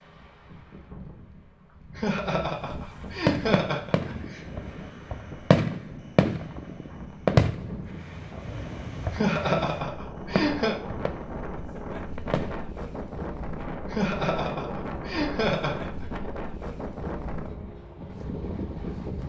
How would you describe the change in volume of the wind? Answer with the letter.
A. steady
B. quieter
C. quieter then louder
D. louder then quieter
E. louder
E.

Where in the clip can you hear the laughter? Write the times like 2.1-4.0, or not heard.
1.9-4.4, 9.1-10.8, 13.9-16.1.